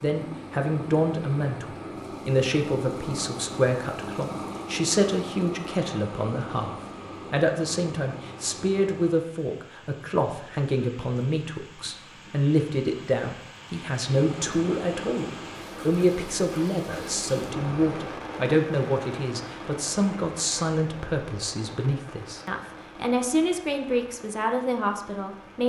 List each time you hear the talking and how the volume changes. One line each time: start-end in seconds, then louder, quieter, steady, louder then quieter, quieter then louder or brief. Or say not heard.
0.0-25.6 steady.